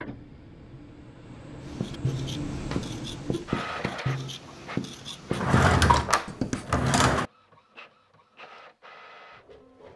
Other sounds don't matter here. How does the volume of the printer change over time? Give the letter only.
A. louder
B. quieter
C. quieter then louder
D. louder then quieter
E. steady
D.